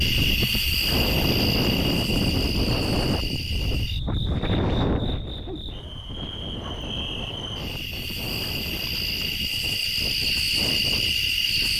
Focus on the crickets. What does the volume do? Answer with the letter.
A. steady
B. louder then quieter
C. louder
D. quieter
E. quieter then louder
E.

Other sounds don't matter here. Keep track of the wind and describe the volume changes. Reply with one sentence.
The volume of the wind goes down.